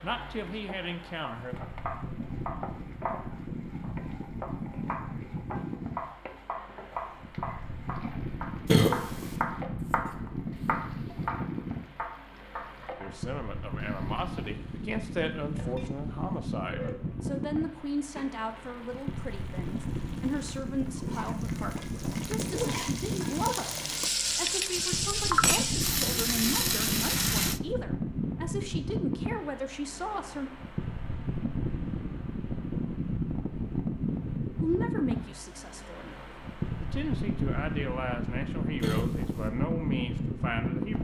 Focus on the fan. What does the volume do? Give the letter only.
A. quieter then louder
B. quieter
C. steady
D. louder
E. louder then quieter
D.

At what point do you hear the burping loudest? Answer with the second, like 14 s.
9 s.